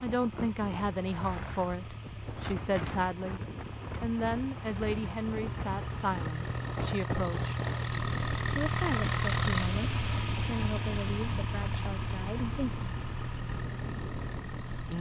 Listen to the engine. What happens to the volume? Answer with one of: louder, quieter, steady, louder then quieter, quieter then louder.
louder then quieter.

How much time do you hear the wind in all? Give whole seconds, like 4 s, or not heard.
15 s.